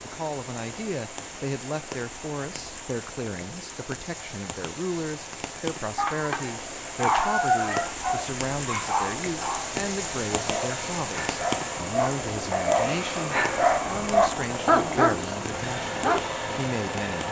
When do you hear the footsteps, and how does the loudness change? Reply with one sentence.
The footsteps can't be heard in this clip.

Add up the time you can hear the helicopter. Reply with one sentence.
You can hear the helicopter for 17 seconds altogether.